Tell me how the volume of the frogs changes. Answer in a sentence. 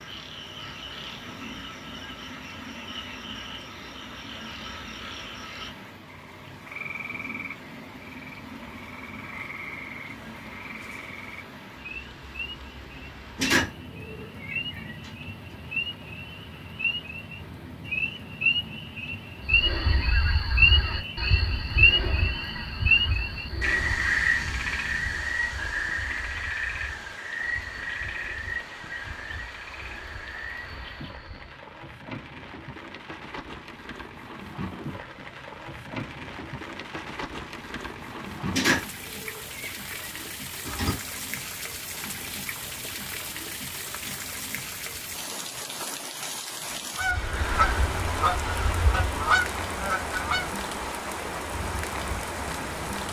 The volume of the frogs goes up, then down.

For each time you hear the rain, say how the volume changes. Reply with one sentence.
The rain can be heard from 0.0 to 53.0 s, getting louder.